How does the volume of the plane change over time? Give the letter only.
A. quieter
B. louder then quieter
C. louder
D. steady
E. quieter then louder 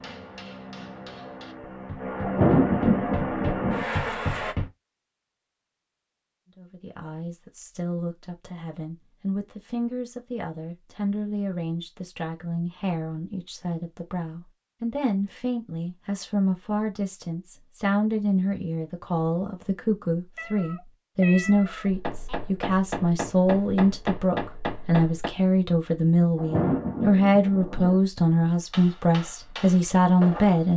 C.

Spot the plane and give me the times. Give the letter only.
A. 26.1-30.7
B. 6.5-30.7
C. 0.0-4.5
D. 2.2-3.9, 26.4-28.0
C.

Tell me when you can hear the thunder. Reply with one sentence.
You can hear the thunder from 2.2 to 3.9 s and from 26.4 to 28.0 s.